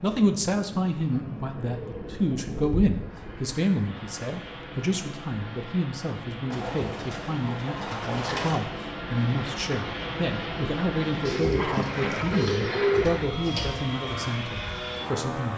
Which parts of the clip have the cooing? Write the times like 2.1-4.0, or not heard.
1.6-3.5, 6.5-8.6, 11.2-13.8.